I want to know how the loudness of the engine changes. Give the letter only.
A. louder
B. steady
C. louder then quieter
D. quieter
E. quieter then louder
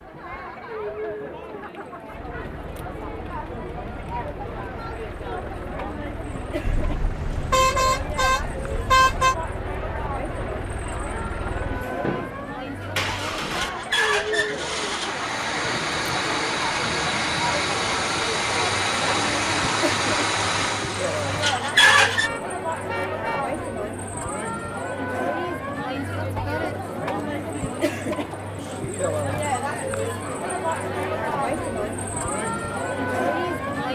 A.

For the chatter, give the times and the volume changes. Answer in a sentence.
You can hear the chatter from 0.0 to 33.9 s, getting louder.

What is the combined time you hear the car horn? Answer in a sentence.
You can hear the car horn for 4 seconds altogether.